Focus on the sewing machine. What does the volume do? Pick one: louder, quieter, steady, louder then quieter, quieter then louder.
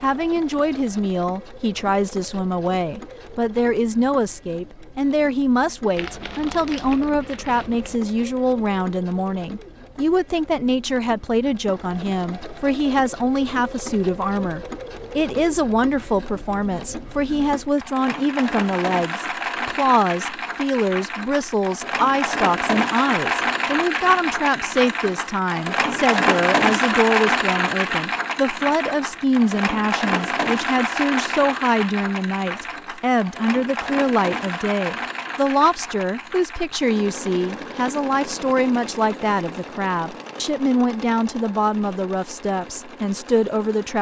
louder then quieter.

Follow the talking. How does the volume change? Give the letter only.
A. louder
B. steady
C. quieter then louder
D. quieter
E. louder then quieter
B.